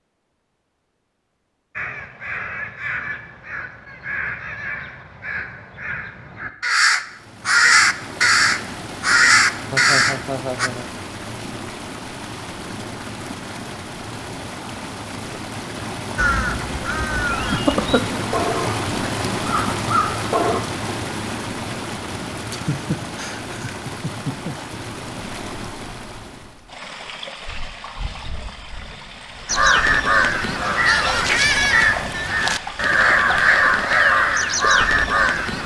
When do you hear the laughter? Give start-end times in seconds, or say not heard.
9.7-10.9, 22.5-24.6.